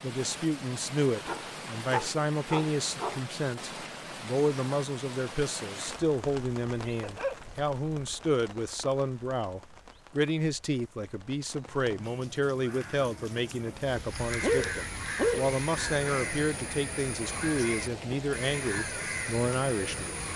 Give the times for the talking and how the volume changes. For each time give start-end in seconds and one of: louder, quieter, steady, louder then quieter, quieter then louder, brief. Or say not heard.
0.0-20.1 steady.